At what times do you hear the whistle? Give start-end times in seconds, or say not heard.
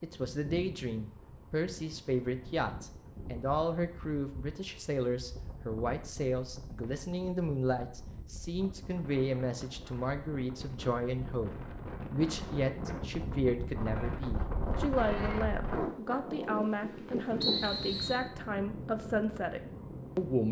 17.4-18.2.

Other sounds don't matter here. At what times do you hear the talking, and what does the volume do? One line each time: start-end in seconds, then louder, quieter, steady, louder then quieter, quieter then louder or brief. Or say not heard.
0.0-20.4 steady.